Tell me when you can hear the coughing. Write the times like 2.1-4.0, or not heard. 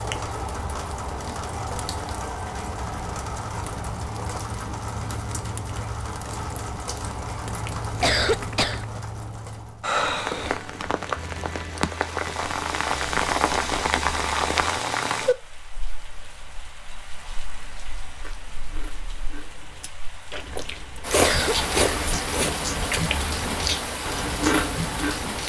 8.0-8.8, 21.1-22.1.